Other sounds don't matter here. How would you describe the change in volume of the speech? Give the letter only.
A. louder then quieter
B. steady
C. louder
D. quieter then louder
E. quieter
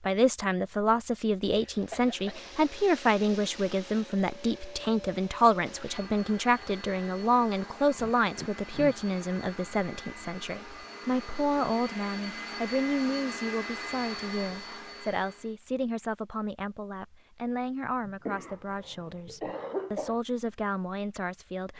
E.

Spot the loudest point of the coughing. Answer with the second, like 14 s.
20 s.